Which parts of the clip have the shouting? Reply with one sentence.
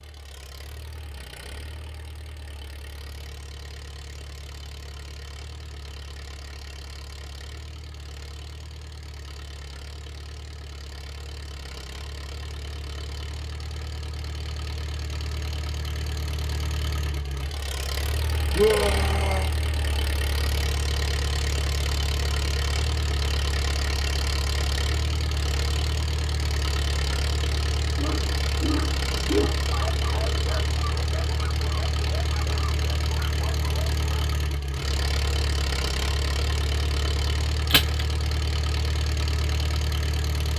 You can hear the shouting from 18.6 to 19.5 s.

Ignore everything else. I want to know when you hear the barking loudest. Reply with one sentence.
The loudest moment of the barking is at 29 seconds.